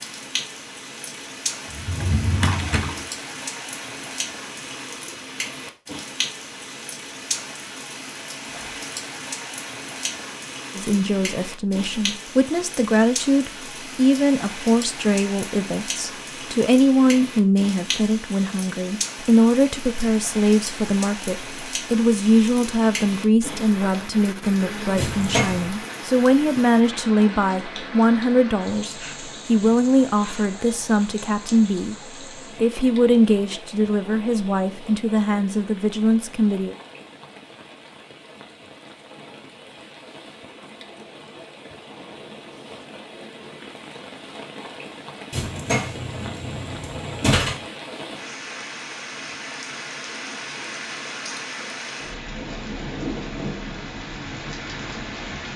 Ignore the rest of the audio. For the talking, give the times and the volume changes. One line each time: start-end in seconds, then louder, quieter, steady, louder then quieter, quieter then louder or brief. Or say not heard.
10.8-36.8 steady.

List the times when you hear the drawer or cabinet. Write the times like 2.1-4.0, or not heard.
1.7-3.0, 24.9-25.7, 45.3-47.6.